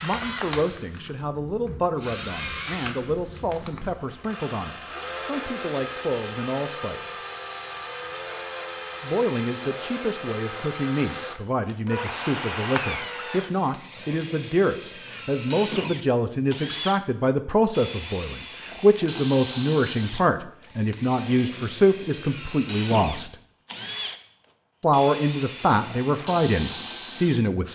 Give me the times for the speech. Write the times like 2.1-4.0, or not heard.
0.0-7.2, 9.0-23.4, 24.8-27.7.